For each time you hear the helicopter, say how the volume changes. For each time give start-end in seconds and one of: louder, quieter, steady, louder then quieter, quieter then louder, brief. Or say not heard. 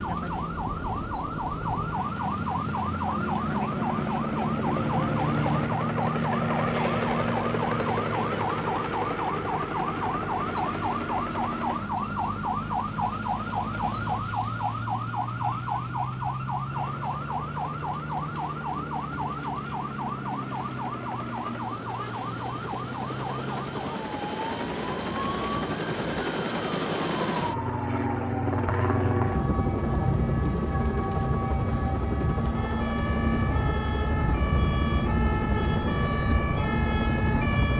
0.0-14.2 louder then quieter
16.7-37.7 louder.